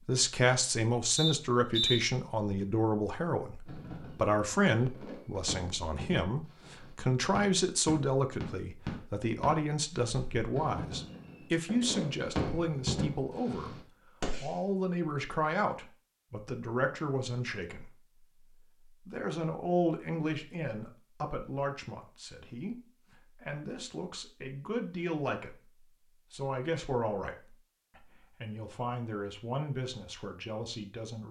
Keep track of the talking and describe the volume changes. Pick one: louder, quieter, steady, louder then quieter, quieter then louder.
quieter.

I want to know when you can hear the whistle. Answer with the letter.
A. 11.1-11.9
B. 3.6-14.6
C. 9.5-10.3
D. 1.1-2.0
D.